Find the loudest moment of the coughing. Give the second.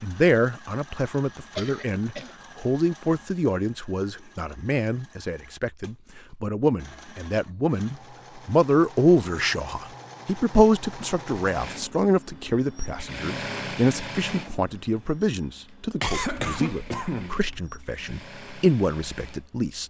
16 s.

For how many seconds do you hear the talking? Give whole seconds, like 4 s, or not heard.
20 s.